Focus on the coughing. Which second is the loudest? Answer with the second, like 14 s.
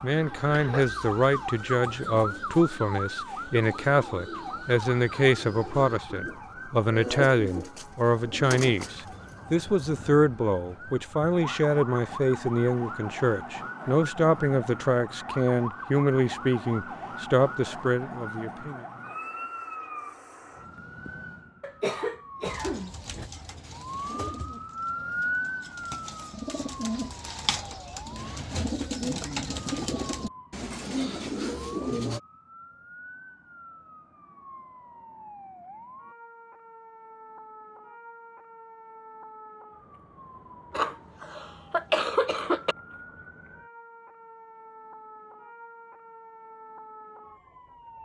42 s.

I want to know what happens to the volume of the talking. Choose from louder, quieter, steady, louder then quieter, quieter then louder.
steady.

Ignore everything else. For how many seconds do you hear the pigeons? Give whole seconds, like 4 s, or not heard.
19 s.